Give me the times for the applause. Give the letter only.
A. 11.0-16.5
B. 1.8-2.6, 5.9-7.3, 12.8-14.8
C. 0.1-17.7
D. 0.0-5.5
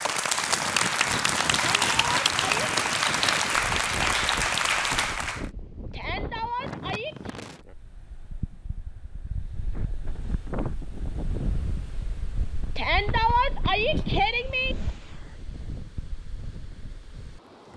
D.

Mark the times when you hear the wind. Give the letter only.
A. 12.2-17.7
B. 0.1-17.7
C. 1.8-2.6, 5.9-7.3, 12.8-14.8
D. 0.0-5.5
B.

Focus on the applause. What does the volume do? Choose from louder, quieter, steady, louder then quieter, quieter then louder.
steady.